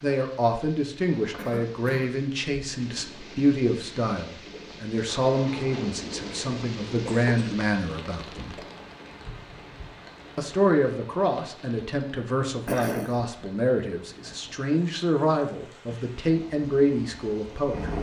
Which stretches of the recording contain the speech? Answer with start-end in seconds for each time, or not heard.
0.0-8.6, 10.3-17.9.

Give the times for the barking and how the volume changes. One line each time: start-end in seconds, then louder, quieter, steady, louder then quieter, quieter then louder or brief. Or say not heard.
not heard.